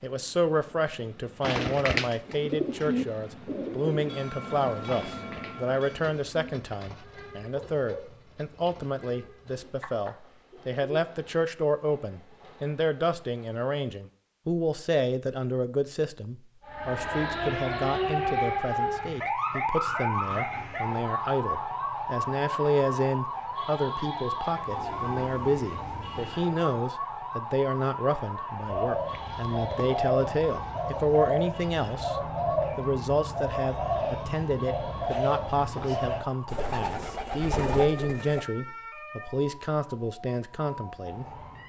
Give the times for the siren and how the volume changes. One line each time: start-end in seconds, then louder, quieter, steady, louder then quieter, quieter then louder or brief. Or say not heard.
16.6-41.6 quieter.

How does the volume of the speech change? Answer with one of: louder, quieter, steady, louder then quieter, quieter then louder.
steady.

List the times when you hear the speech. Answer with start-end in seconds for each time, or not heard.
0.0-32.1, 32.8-41.6.